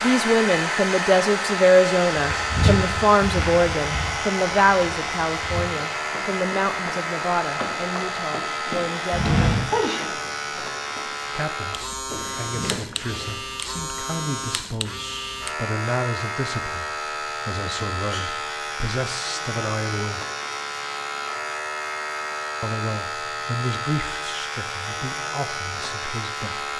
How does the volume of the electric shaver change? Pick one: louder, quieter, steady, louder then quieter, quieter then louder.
steady.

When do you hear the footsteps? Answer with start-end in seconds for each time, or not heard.
2.1-13.3.